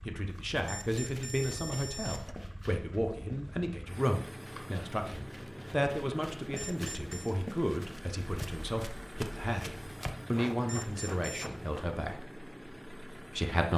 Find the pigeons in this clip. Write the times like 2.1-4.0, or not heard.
not heard.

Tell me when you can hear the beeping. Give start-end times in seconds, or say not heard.
0.7-2.4, 6.5-7.3, 10.7-11.5.